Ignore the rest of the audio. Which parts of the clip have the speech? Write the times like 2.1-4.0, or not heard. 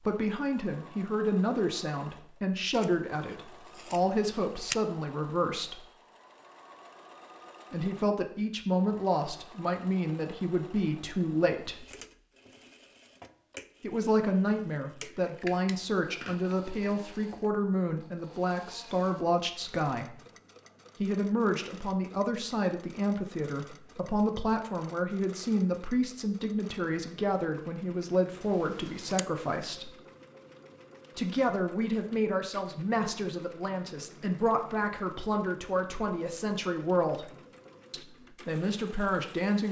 0.0-5.8, 7.7-11.8, 13.8-20.2, 21.0-29.9, 31.1-39.6.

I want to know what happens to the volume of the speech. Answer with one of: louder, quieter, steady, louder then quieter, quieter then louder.
steady.